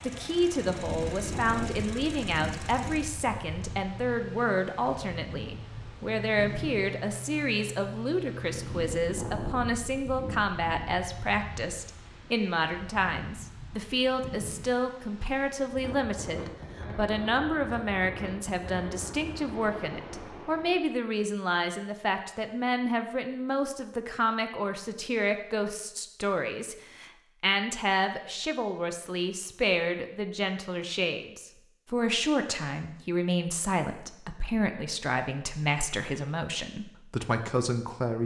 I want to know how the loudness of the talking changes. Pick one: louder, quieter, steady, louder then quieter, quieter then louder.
steady.